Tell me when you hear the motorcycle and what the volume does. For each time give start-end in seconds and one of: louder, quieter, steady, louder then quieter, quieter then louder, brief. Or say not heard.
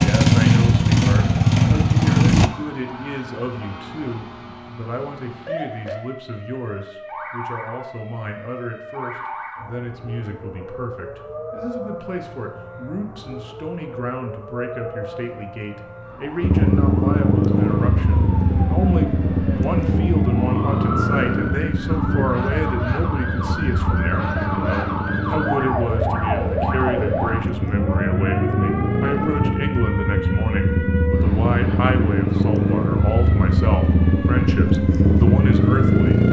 0.0-2.5 brief
16.4-36.2 quieter then louder.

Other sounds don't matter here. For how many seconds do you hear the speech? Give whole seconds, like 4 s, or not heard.
36 s.